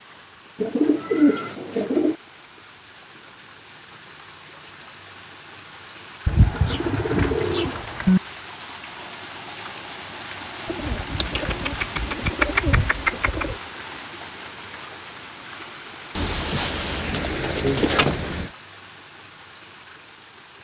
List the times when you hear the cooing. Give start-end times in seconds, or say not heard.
0.6-2.1, 6.2-8.2, 10.7-13.6, 16.1-18.5.